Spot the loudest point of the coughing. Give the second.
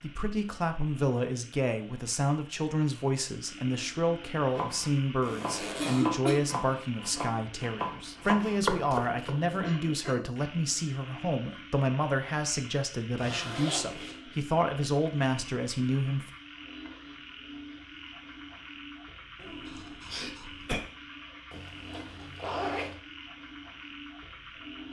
6 s.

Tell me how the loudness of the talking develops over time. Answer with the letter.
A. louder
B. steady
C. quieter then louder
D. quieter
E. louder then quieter
B.